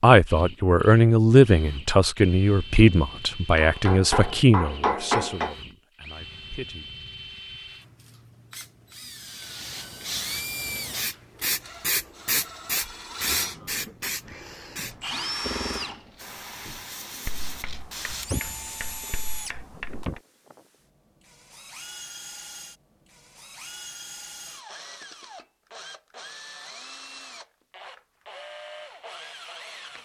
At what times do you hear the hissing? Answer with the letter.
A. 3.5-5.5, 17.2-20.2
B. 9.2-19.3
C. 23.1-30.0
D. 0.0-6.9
B.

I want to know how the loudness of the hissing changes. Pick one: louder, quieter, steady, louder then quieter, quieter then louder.
louder then quieter.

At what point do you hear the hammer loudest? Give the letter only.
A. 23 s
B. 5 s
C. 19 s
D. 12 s
B.